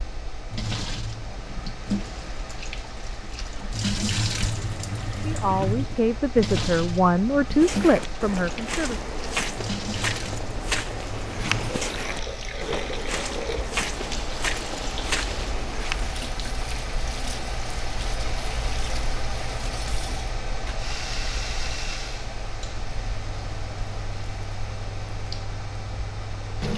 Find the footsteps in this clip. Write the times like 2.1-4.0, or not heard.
7.5-16.1.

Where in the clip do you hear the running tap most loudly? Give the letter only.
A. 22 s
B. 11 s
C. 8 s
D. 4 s
D.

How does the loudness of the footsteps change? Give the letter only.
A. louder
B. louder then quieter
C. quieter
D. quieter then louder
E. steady
E.